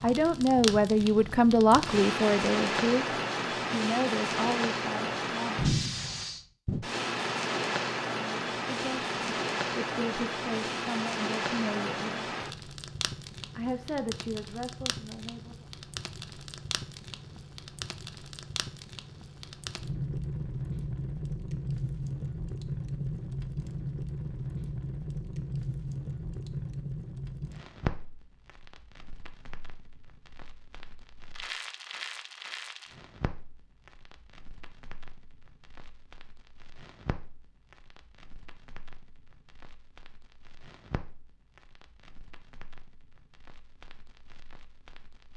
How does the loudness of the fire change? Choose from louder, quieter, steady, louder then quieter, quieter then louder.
quieter.